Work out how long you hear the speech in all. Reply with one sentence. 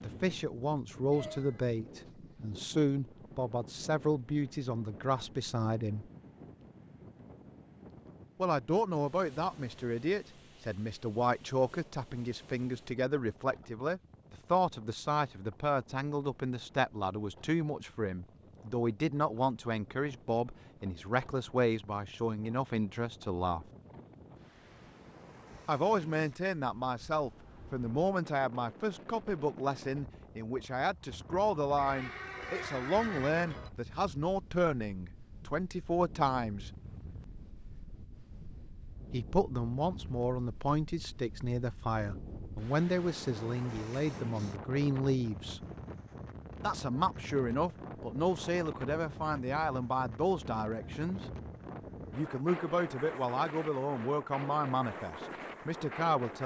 You can hear the speech for 48 seconds altogether.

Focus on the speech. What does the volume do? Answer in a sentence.
The volume of the speech stays about the same.